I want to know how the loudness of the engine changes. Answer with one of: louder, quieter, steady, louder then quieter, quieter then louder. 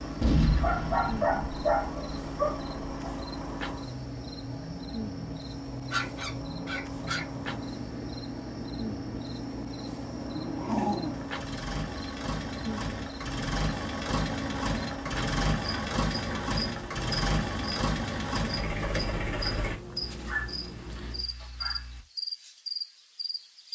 louder.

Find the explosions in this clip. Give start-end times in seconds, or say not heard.
0.2-1.3.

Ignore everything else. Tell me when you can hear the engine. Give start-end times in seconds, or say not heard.
0.0-19.8.